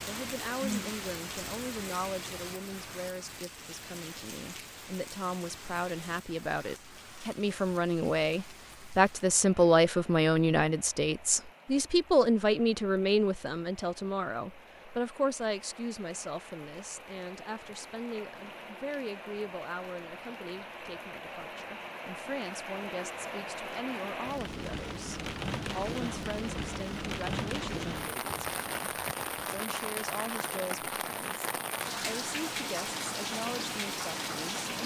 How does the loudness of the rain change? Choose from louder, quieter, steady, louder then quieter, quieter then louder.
quieter then louder.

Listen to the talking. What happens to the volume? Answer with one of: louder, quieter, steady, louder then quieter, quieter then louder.
louder then quieter.